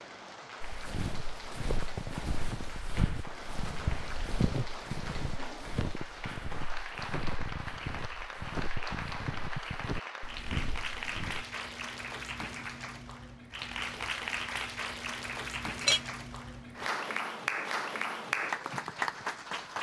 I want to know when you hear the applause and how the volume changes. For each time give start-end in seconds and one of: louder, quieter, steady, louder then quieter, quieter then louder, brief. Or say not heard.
0.0-19.7 louder.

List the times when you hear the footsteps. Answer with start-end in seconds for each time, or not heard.
0.6-11.4.